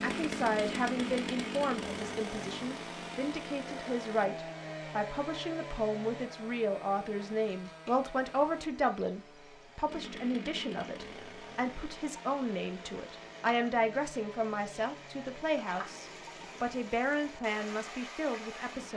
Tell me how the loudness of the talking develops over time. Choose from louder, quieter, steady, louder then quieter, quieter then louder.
steady.